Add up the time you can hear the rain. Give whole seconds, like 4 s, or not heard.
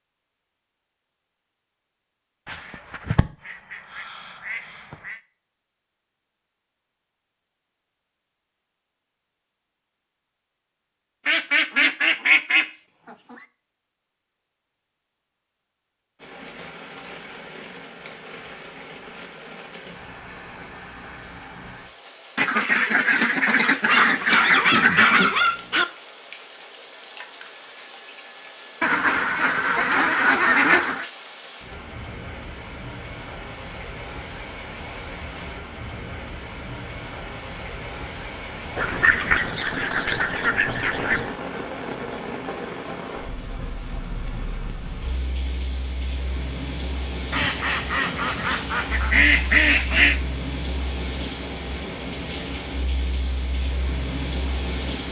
39 s.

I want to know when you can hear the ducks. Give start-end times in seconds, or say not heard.
2.5-5.2, 11.2-13.3, 22.4-25.3, 28.8-31.1, 38.8-41.3, 47.3-50.2.